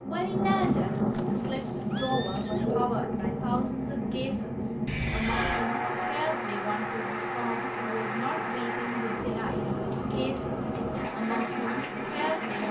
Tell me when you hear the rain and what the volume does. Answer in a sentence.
You can hear the rain from 0.0 to 12.6 s, at a steady volume.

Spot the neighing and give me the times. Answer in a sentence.
You can hear the neighing from 0.7 to 2.7 s, from 4.8 to 5.7 s and from 9.4 to 9.8 s.